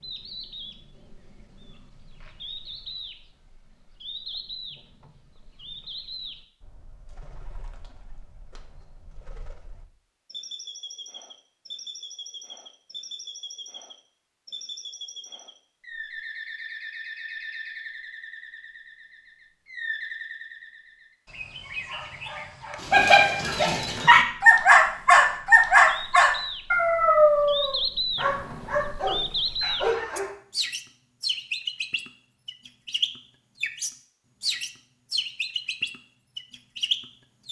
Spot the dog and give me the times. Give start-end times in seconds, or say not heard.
22.8-30.4.